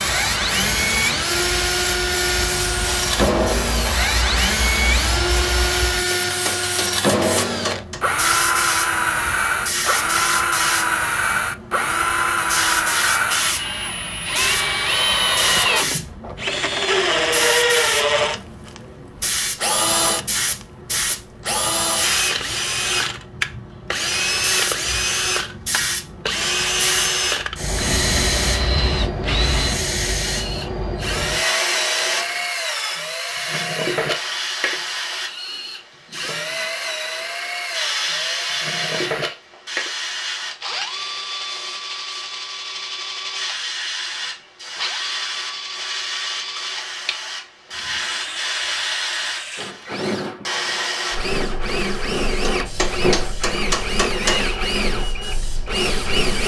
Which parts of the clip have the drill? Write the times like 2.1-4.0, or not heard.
0.0-56.4.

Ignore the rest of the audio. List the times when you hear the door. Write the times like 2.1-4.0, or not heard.
not heard.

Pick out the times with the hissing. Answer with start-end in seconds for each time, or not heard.
0.0-56.4.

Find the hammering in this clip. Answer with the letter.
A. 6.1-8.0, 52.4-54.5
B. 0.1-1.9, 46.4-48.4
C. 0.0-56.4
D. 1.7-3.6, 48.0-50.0
A.